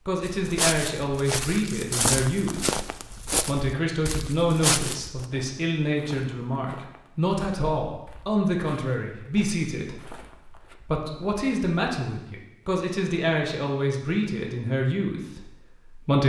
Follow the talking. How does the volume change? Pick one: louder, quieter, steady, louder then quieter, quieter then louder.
steady.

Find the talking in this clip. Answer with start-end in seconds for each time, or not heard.
0.1-16.2.